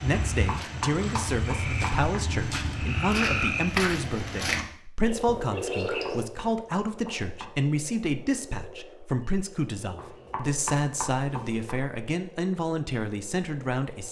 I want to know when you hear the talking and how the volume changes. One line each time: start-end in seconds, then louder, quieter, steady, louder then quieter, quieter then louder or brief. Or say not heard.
0.0-14.0 steady.